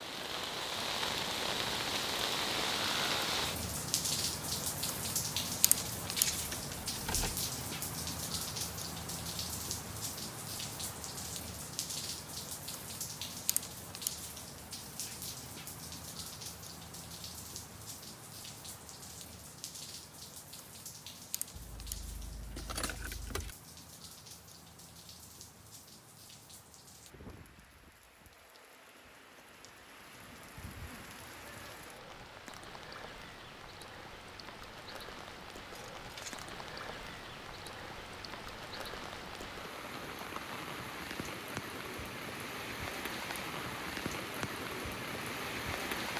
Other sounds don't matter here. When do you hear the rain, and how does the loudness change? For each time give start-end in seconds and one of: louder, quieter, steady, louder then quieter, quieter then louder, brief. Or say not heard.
0.0-46.1 quieter then louder.